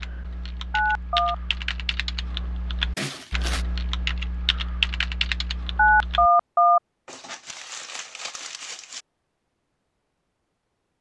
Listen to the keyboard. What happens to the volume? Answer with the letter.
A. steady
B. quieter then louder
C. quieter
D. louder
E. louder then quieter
D.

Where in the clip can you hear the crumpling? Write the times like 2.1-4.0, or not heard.
3.0-3.6, 7.0-9.1.